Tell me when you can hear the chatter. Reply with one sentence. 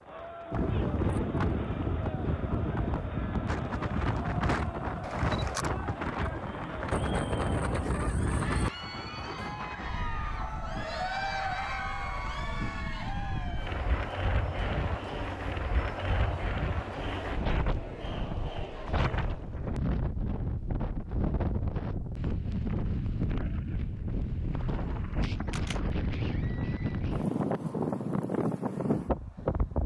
The chatter can be heard from 0.0 to 19.6 s.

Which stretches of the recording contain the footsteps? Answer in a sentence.
The footsteps can't be heard in this clip.